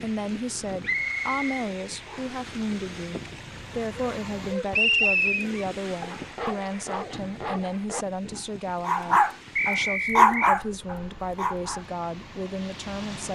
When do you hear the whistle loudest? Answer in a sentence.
The loudest moment of the whistle is at 5 seconds.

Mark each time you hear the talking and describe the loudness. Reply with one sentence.
You can hear the talking from 0.0 to 13.3 s, at a steady volume.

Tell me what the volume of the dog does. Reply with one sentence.
The volume of the dog goes up.